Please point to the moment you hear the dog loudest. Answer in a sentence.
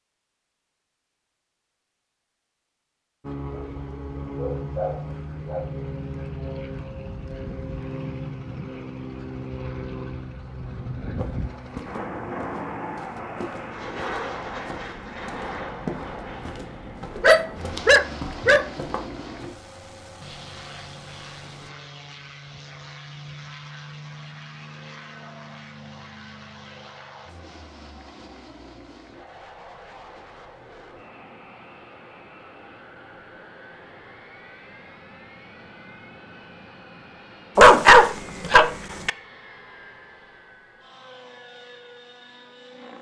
The loudest moment of the dog is at 38 seconds.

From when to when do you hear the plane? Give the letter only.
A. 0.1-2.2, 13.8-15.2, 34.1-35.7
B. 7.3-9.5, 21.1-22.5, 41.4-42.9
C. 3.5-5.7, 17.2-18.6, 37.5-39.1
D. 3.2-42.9
D.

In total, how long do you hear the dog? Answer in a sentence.
You can hear the dog for 5 seconds altogether.